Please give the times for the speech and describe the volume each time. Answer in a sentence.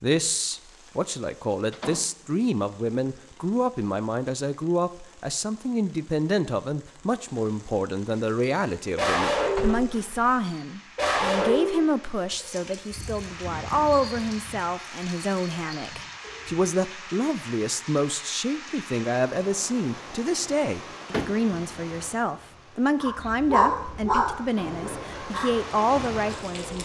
The speech can be heard from 0.0 to 26.7 s, at a steady volume.